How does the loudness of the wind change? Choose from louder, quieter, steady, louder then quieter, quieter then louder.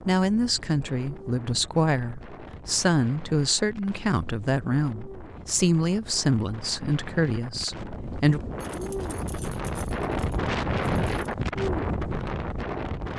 louder.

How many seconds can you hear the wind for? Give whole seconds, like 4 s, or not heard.
13 s.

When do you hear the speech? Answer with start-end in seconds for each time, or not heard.
0.0-8.4.